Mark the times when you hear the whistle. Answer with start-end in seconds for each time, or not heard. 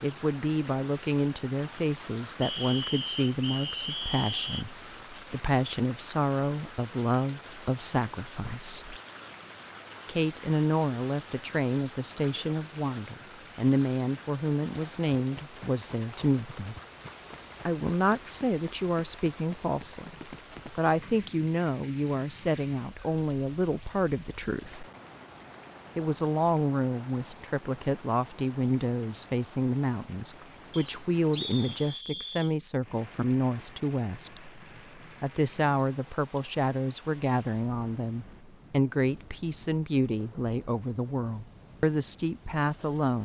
2.4-4.7, 30.7-32.5.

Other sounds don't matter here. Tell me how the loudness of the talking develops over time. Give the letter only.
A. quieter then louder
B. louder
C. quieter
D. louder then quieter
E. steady
E.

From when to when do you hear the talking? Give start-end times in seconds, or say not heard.
0.0-8.9, 10.1-16.8, 17.6-24.9, 25.9-34.6, 35.2-43.2.